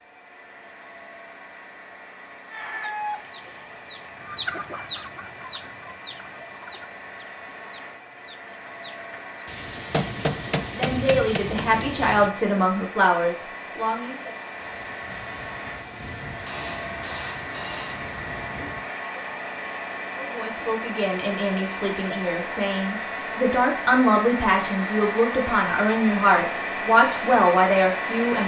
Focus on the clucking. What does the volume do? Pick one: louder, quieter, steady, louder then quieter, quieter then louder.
quieter.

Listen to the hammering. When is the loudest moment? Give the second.
10 s.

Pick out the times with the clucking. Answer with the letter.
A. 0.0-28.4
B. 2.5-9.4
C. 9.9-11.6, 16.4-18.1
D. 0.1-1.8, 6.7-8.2
B.